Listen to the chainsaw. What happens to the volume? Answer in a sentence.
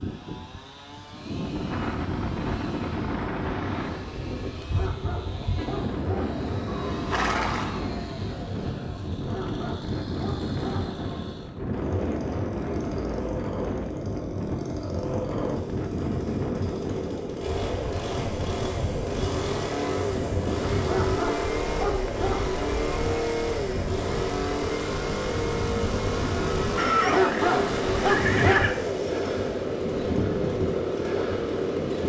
The loudness of the chainsaw goes up.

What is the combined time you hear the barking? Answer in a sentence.
The barking can be heard for 6 seconds in total.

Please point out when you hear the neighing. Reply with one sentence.
You can hear the neighing from 6.9 to 7.8 s and from 26.8 to 28.8 s.